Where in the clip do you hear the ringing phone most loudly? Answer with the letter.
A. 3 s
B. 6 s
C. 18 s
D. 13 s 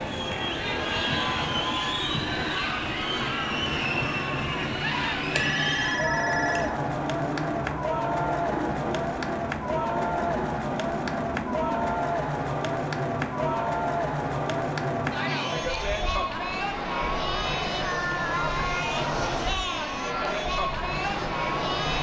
B.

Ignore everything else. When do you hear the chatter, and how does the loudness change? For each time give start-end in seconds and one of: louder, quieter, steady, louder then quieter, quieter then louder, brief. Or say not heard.
0.0-21.9 steady.